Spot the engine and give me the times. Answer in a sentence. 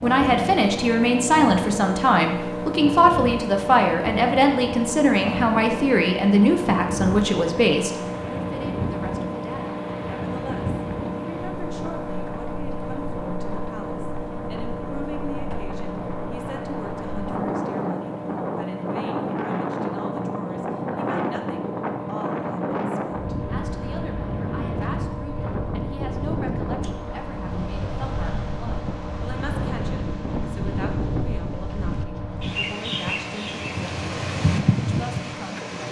The engine can be heard from 0.0 to 35.8 s.